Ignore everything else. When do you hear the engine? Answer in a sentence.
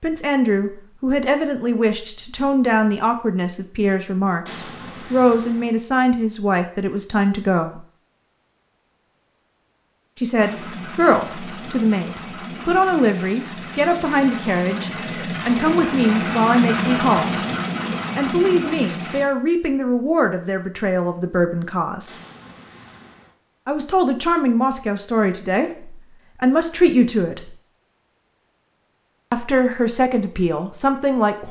You can hear the engine from 10.3 to 19.2 s.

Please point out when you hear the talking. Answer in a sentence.
You can hear the talking from 0.0 to 7.8 s, from 10.2 to 17.4 s, from 18.1 to 22.1 s, from 23.6 to 27.6 s and from 29.3 to 31.4 s.